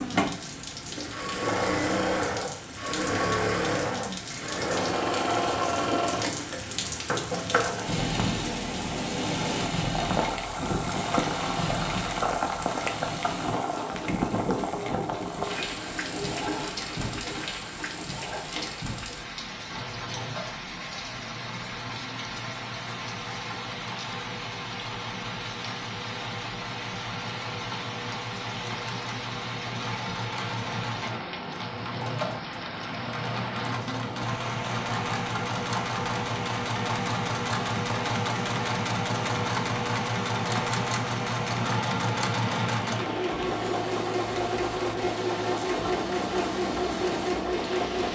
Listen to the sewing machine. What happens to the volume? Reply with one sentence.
The loudness of the sewing machine goes down, then up.